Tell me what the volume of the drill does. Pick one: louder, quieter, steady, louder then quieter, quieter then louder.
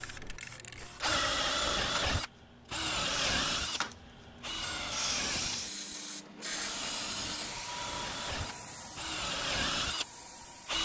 quieter then louder.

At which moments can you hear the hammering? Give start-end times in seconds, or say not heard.
not heard.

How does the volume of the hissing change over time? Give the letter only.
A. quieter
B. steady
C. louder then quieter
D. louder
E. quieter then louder
C.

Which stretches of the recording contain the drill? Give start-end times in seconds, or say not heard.
0.0-10.8.